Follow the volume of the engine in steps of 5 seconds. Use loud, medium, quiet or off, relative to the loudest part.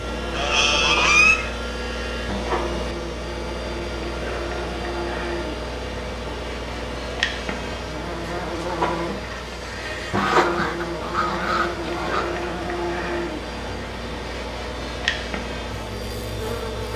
loud, loud, medium, loud.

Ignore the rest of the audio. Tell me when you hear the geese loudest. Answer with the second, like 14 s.
1 s.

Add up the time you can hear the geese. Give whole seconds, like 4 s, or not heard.
3 s.